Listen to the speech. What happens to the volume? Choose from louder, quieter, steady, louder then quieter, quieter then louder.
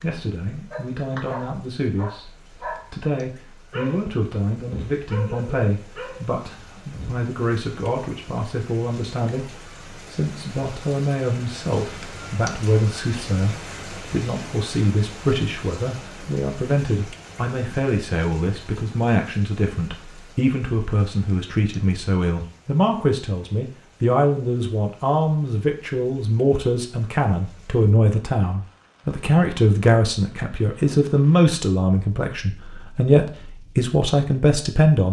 louder.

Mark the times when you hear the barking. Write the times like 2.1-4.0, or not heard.
0.7-7.2.